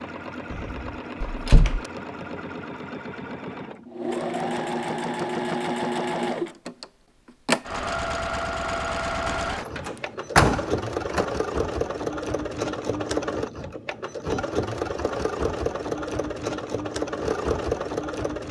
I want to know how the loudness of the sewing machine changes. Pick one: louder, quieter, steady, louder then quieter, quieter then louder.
louder.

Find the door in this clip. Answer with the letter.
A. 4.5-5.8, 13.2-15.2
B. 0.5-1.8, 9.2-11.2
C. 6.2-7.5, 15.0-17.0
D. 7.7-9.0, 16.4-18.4
B.